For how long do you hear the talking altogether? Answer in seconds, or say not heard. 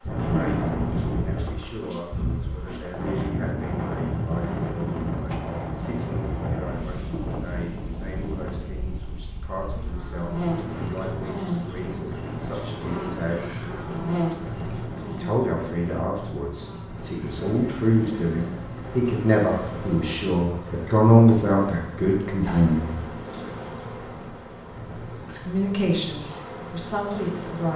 24 s.